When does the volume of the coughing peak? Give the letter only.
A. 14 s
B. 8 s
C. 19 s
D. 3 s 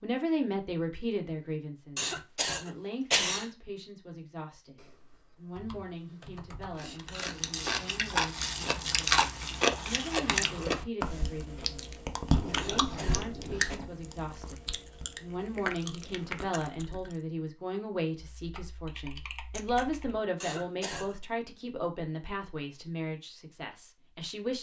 D.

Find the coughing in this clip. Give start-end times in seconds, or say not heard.
1.9-3.5, 12.6-13.8, 20.4-21.1.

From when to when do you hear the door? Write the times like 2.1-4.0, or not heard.
not heard.